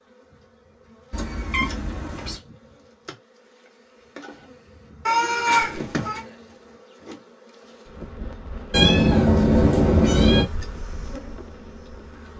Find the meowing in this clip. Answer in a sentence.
The meowing can be heard from 1.1 to 2.4 s, from 5.0 to 6.2 s and from 8.7 to 10.4 s.